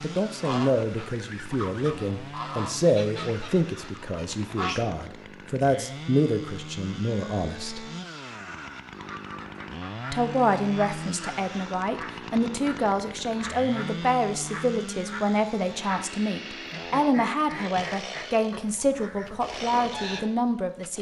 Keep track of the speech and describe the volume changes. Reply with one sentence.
The volume of the speech stays about the same.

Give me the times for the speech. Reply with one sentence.
You can hear the speech from 0.0 to 7.8 s and from 10.1 to 20.9 s.